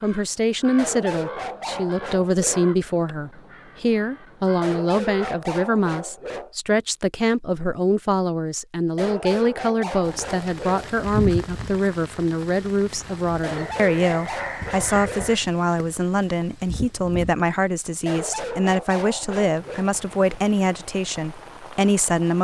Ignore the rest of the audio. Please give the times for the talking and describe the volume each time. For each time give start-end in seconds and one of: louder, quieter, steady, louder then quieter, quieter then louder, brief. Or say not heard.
0.0-22.3 steady.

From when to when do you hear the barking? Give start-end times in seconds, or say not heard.
0.8-2.8, 4.6-6.5, 8.9-10.9, 13.4-15.4, 18.1-19.9.